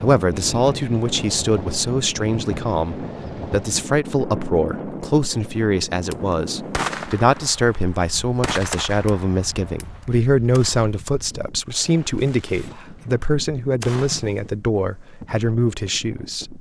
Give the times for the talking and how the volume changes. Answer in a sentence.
You can hear the talking from 0.0 to 16.5 s, at a steady volume.